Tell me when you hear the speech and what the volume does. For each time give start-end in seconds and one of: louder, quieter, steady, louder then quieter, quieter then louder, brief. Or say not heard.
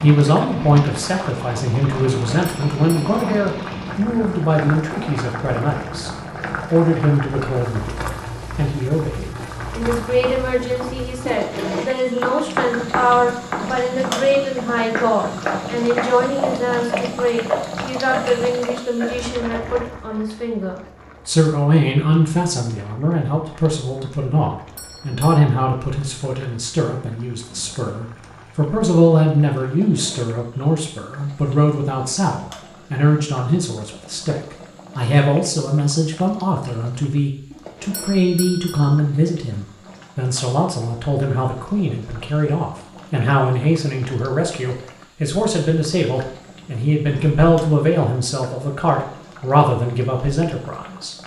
0.0-51.1 steady.